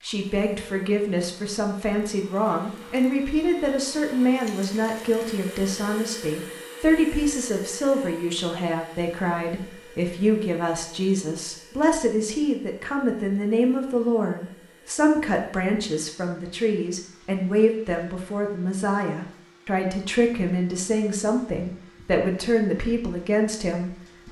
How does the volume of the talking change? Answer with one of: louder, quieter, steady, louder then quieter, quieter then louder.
steady.